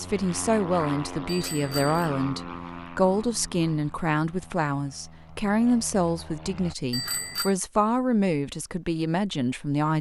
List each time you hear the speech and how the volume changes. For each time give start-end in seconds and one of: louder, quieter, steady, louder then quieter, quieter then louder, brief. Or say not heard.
0.0-9.9 steady.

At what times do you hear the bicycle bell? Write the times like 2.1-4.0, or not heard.
1.2-2.0, 6.9-7.5.